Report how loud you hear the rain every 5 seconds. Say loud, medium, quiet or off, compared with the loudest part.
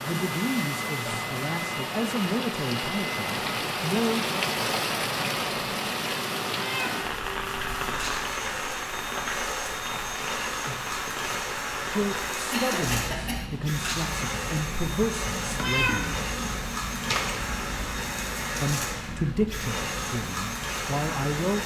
loud, loud, medium, medium, medium.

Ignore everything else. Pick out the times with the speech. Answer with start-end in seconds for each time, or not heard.
0.0-4.3, 11.9-16.1, 18.6-21.6.